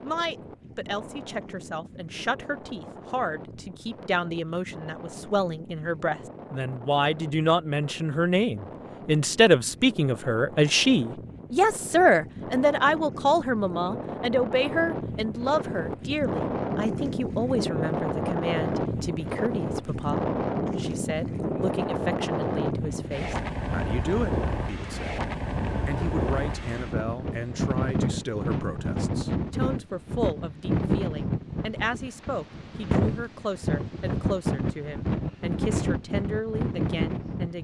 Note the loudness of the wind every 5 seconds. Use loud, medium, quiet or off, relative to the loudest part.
quiet, quiet, medium, loud, loud, loud, loud, loud.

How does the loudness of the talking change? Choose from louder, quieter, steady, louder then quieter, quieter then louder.
louder then quieter.